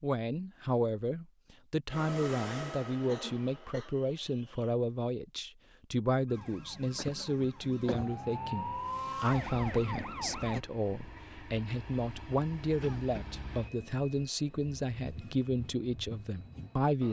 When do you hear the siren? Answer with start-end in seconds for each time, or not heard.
6.2-10.6.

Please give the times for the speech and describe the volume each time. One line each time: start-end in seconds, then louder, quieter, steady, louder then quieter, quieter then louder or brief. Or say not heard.
0.0-17.0 steady.